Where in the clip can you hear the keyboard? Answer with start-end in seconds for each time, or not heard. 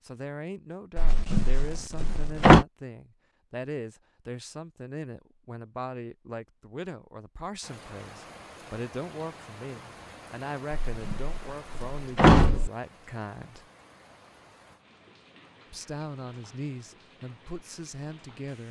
not heard.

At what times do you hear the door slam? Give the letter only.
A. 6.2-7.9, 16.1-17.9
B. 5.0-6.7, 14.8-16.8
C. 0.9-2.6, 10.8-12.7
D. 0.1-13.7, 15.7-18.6
C.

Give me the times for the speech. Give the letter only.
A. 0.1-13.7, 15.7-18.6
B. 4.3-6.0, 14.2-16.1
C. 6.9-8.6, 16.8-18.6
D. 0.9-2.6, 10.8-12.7
A.